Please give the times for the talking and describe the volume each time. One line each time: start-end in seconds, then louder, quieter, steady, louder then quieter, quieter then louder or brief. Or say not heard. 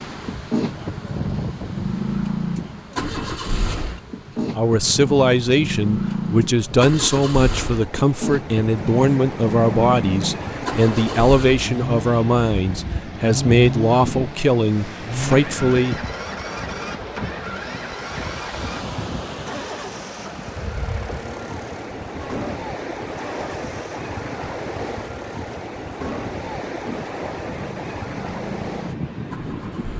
4.5-16.0 steady.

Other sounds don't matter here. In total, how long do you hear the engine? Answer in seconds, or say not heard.
30 s.